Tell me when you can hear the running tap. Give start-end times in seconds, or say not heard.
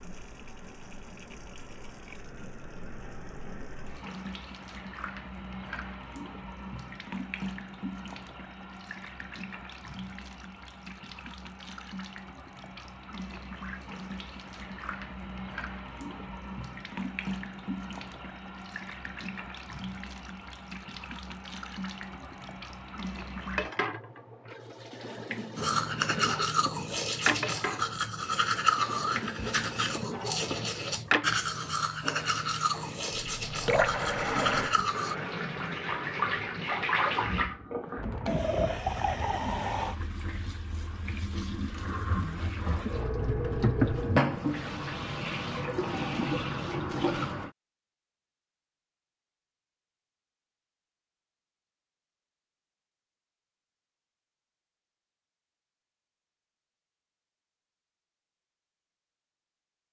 0.0-47.5.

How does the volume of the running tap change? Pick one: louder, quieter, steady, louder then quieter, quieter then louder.
louder.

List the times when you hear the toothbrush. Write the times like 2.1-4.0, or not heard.
25.6-35.1.